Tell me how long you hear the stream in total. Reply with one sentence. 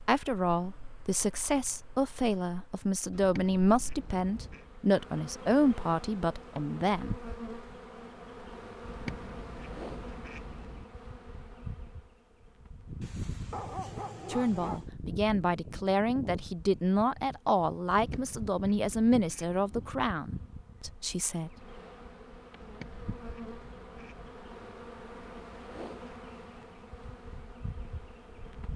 The stream can't be heard in this clip.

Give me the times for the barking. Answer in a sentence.
The barking can be heard from 13.0 to 14.9 s.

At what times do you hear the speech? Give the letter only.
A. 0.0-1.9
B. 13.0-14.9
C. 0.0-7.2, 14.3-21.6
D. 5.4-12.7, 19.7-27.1
C.